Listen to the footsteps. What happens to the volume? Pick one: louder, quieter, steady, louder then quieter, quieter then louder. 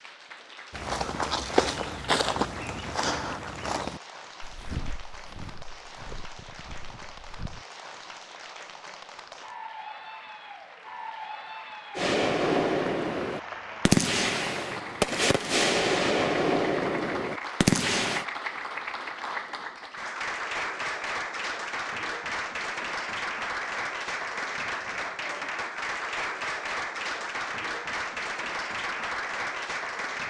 quieter.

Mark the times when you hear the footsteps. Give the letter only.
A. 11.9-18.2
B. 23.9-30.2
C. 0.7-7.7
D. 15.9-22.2
C.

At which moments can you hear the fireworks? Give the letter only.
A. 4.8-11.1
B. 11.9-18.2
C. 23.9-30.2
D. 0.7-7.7
B.